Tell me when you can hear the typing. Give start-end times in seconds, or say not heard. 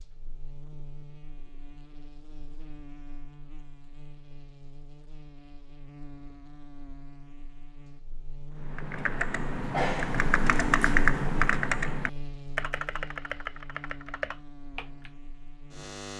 8.6-15.1.